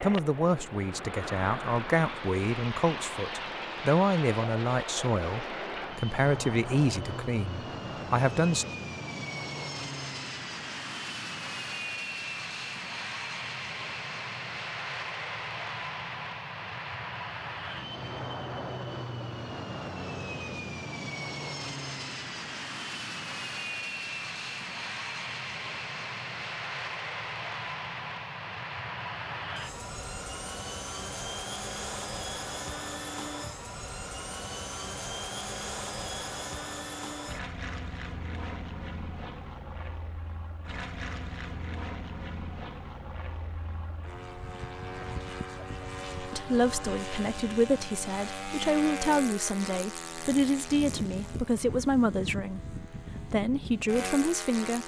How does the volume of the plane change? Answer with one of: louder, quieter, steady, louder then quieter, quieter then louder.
steady.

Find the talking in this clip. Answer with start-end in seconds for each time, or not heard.
0.0-8.7, 46.1-54.8.